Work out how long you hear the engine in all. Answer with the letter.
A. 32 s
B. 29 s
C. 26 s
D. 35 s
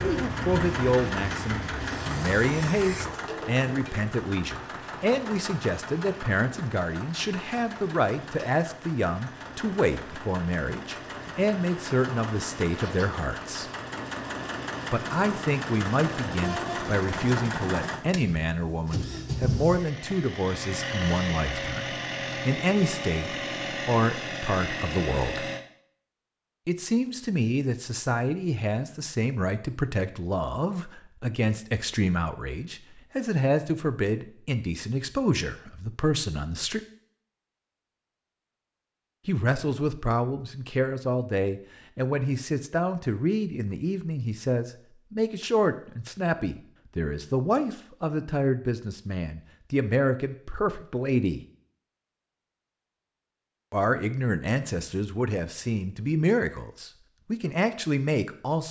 C.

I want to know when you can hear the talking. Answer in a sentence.
You can hear the talking from 0.0 to 13.7 s, from 14.9 to 25.5 s, from 26.6 to 36.8 s, from 39.2 to 51.4 s and from 53.7 to 58.6 s.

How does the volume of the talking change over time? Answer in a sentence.
The volume of the talking stays about the same.